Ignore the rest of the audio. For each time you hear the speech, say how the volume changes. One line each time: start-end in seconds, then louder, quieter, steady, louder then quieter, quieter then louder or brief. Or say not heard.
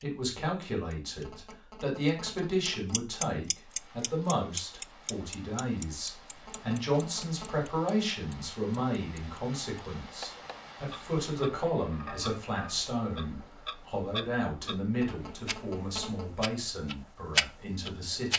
0.0-18.3 steady.